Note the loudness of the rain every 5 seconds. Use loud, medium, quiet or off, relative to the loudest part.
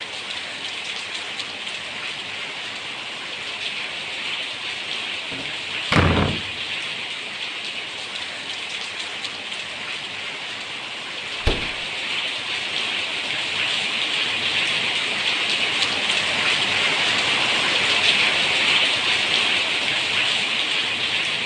medium, medium, medium, loud, loud.